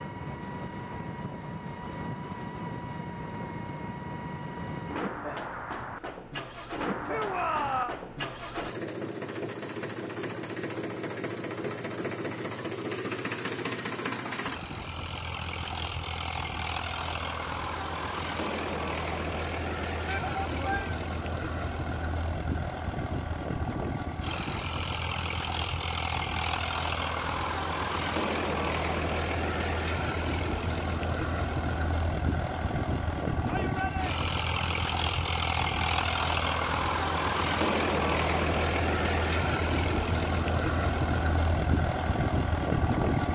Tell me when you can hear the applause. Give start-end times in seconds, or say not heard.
not heard.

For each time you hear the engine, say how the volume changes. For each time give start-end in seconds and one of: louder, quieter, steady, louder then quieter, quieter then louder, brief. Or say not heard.
0.0-43.2 louder.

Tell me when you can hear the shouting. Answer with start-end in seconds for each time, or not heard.
7.0-8.0, 20.1-21.0, 33.5-34.2.